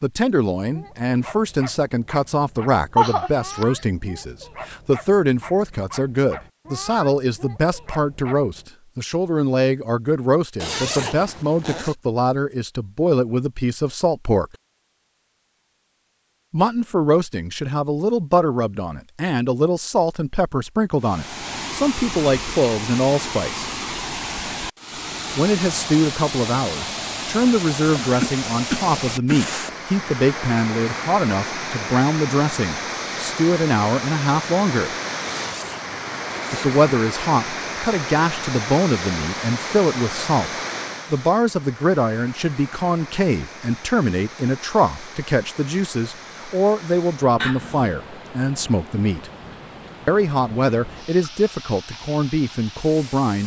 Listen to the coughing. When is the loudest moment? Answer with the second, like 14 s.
3 s.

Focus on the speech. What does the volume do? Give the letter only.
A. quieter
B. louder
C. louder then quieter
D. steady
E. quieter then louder
D.